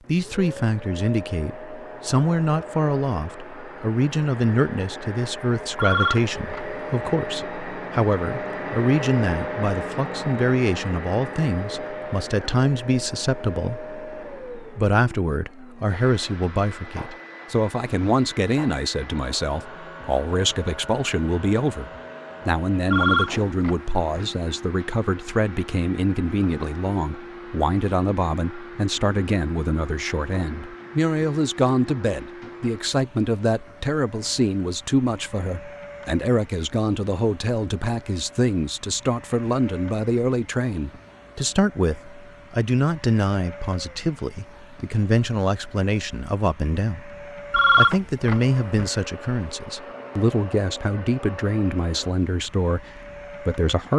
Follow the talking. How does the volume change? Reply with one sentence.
The loudness of the talking stays about the same.